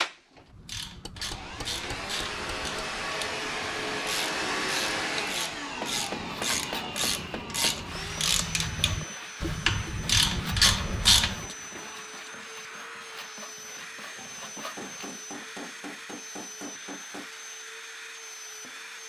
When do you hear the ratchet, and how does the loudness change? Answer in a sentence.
The ratchet can be heard from 0.4 to 11.6 s, getting louder.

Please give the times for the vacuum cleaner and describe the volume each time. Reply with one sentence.
The vacuum cleaner can be heard from 0.0 to 19.0 s, getting quieter.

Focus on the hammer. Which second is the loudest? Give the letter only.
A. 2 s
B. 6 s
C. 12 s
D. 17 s
B.